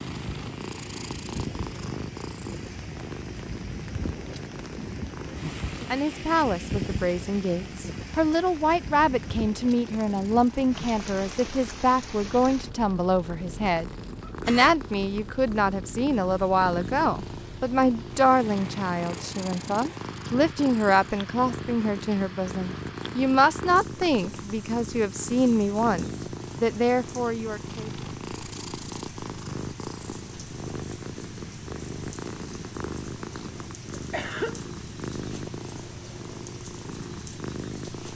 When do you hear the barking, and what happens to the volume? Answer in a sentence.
You can't hear the barking here.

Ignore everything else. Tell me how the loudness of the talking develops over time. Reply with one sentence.
The loudness of the talking stays about the same.